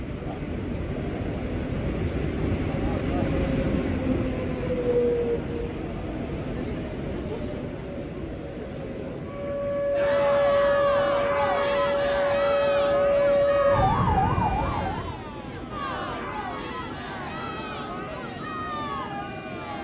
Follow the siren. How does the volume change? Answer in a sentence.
The loudness of the siren stays about the same.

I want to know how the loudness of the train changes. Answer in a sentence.
The loudness of the train goes down.